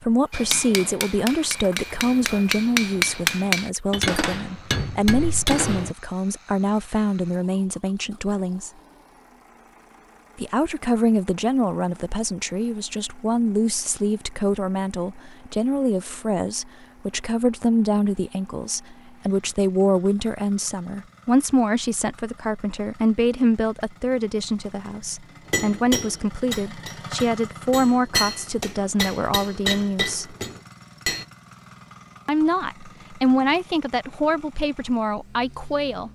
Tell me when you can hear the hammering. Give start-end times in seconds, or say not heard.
0.3-6.0, 25.4-31.2.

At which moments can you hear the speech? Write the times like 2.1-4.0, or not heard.
0.0-8.7, 10.3-30.4, 32.2-36.1.